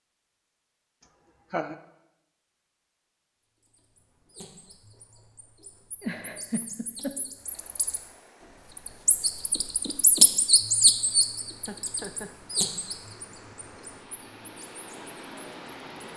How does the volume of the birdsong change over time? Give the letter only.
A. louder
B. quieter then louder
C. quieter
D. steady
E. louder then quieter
E.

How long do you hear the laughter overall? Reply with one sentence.
You can hear the laughter for 3 seconds altogether.